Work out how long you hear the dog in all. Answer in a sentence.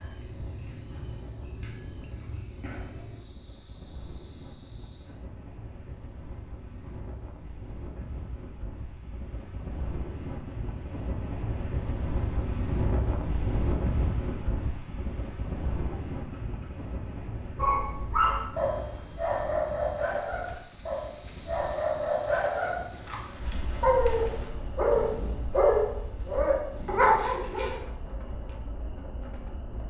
You can hear the dog for 10 seconds altogether.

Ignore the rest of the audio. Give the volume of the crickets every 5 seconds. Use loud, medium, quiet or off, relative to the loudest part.
quiet, quiet, quiet, quiet, loud, quiet.